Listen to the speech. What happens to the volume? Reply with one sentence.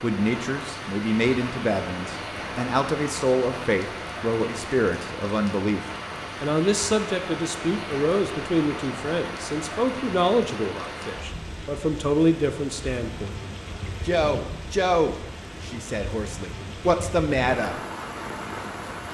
The volume of the speech stays about the same.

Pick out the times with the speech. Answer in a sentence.
You can hear the speech from 0.0 to 5.8 s, from 6.4 to 13.4 s and from 14.1 to 17.8 s.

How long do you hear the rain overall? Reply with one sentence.
The rain can be heard for 19 seconds in total.